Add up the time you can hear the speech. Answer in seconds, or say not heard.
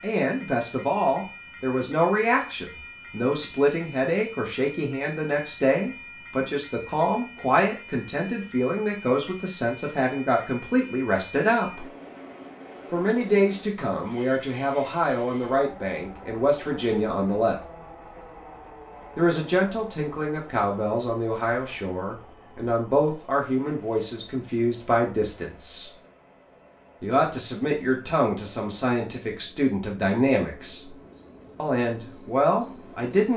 29 s.